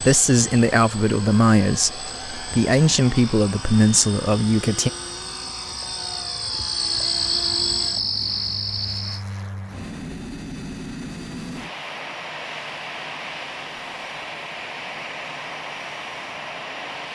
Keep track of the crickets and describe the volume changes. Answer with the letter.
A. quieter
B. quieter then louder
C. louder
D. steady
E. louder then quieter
C.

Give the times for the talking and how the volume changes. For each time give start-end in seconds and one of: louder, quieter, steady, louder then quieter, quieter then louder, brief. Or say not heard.
0.0-4.9 steady.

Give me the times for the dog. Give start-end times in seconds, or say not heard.
not heard.